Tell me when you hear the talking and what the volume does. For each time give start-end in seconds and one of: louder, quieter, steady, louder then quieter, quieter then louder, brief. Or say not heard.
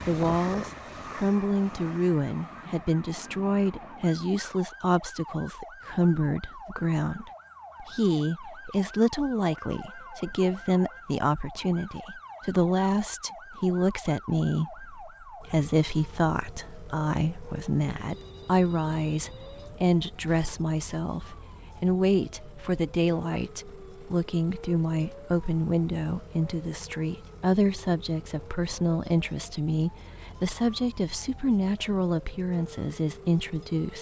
0.1-33.9 steady.